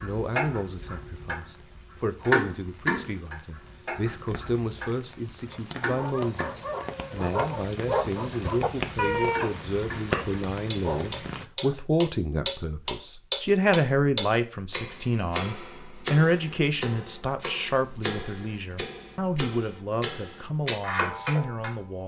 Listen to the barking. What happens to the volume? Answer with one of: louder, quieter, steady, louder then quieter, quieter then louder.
louder then quieter.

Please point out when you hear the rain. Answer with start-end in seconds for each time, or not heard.
0.0-11.4.